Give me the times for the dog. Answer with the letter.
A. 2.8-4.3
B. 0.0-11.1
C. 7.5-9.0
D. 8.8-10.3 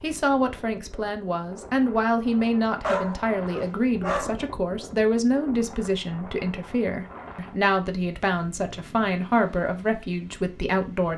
A.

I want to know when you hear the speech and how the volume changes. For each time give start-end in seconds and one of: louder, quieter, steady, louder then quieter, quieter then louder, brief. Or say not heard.
0.0-11.1 steady.